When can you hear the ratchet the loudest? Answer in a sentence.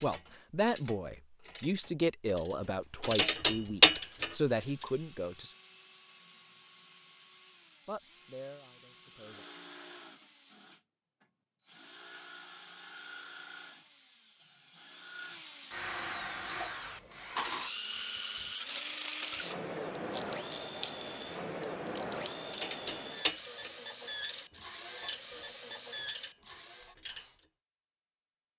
The loudest moment of the ratchet is at 4 seconds.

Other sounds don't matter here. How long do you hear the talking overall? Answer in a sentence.
The talking can be heard for 7 seconds in total.